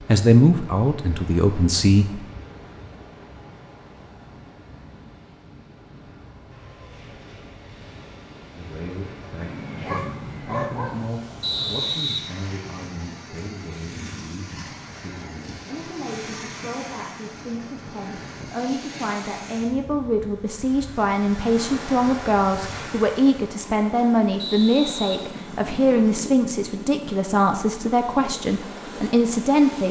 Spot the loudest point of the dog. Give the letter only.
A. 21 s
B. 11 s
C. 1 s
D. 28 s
B.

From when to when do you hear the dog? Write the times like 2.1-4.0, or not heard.
9.4-11.1.